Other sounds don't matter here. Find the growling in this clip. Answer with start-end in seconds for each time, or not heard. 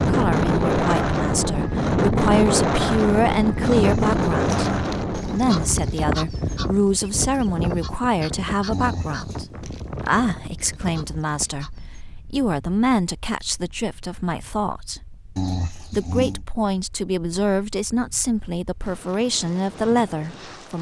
3.6-4.8, 8.7-9.4, 15.3-16.4.